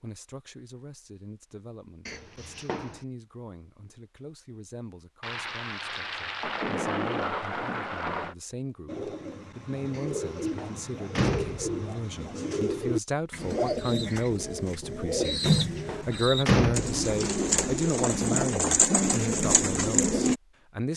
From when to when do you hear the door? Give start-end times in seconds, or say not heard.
2.0-3.0, 9.9-11.7, 15.2-16.9.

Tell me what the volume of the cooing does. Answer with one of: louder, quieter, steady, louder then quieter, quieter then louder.
louder.